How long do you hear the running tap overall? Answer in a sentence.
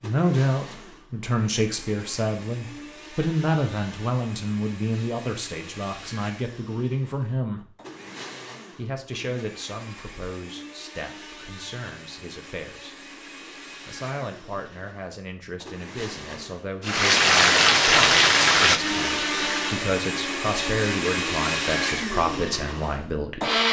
You can hear the running tap for 3 seconds altogether.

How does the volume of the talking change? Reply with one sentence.
The loudness of the talking goes down, then up.